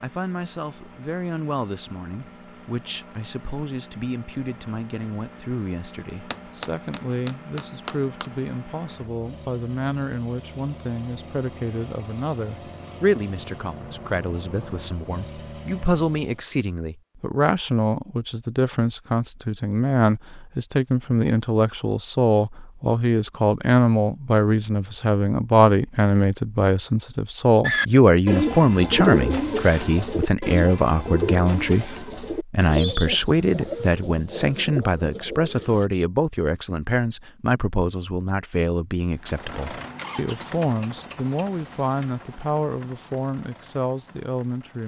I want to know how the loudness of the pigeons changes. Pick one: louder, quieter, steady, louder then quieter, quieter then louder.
quieter.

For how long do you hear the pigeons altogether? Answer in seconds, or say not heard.
8 s.